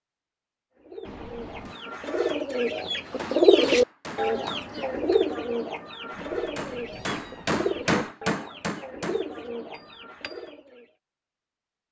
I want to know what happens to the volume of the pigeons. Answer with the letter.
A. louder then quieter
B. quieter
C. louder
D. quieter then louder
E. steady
A.